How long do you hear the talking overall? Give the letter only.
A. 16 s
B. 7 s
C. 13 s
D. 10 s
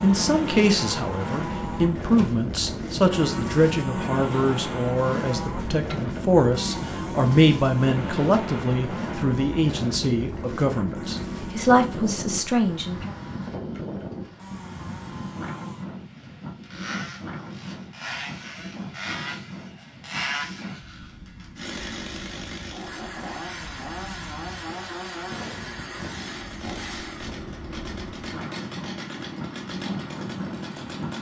C.